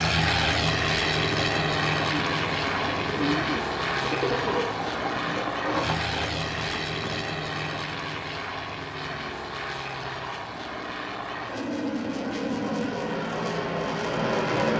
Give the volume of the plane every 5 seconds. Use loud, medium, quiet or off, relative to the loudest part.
loud, medium, loud.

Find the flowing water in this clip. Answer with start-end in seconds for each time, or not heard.
not heard.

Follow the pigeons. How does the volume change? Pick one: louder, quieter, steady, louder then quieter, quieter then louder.
quieter.